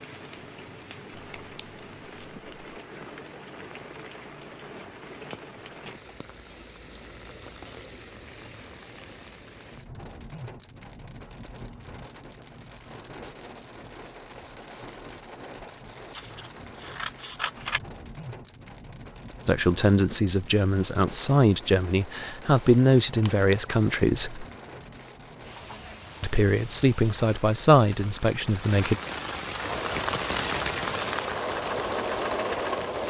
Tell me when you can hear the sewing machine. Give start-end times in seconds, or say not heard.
29.6-33.0.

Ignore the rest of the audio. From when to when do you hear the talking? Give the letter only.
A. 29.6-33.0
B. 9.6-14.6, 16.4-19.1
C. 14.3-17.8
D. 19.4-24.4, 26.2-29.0
D.